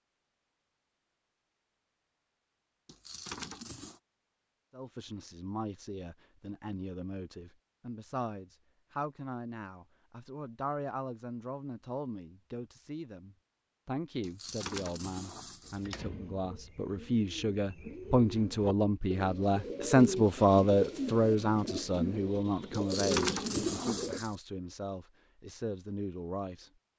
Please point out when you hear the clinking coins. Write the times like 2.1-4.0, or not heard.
2.9-4.0, 14.2-15.8, 22.7-24.4.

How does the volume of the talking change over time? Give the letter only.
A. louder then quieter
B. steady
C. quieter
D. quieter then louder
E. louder
A.